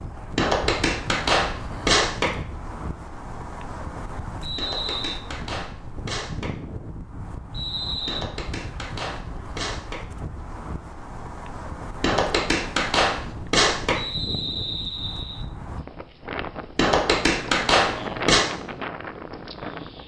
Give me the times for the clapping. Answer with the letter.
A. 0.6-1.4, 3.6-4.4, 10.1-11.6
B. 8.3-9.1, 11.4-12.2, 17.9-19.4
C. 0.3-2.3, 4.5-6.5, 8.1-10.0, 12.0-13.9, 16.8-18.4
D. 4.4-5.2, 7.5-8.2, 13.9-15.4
C.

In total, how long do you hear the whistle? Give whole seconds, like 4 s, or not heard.
3 s.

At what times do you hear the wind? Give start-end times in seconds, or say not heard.
0.0-20.0.